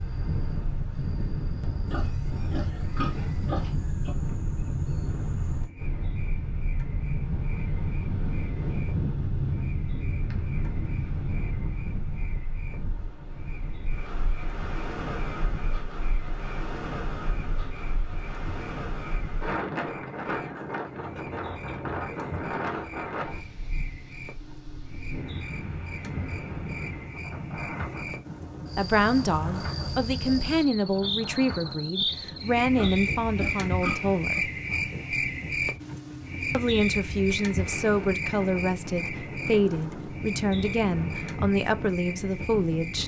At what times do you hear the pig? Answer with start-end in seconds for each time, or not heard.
1.9-4.2, 32.7-34.4.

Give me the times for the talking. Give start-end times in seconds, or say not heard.
28.8-34.5, 36.5-43.0.